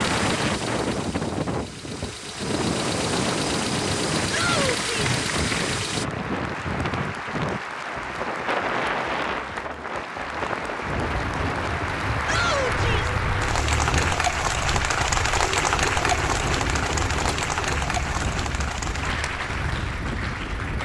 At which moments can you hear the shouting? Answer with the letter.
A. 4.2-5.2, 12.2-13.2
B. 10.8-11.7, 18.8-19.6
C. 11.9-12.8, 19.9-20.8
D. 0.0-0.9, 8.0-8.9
A.